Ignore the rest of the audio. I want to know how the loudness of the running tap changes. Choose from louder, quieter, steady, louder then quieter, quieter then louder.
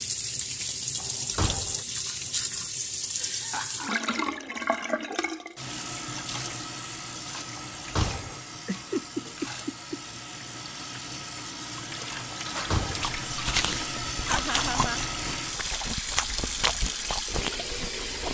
quieter then louder.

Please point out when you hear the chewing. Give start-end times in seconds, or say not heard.
13.0-18.3.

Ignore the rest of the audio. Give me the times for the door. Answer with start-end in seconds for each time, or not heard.
0.9-1.9, 7.5-8.4, 12.5-13.2.